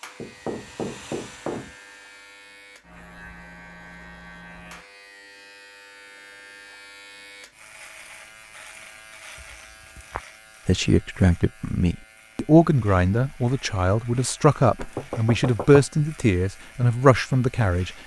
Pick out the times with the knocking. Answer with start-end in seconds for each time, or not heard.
0.2-1.8, 9.4-10.2, 14.8-16.0.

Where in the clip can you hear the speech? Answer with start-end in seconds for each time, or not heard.
10.7-17.9.